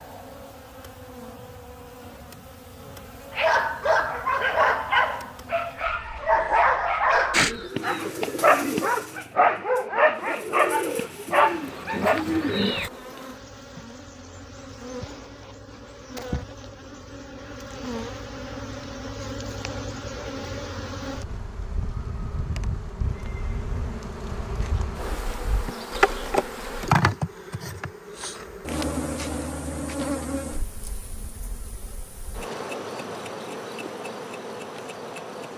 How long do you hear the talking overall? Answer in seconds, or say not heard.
not heard.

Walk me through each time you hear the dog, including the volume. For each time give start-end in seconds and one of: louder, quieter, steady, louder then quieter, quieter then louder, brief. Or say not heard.
3.4-12.2 steady.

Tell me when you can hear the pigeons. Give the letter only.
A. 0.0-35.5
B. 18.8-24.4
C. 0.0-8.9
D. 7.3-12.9
D.